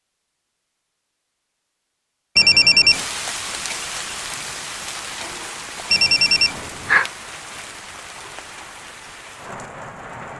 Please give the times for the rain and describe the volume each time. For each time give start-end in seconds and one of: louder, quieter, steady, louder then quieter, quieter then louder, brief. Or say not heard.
2.9-10.3 quieter.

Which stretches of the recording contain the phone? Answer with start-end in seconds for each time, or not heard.
2.4-3.0, 5.9-7.0.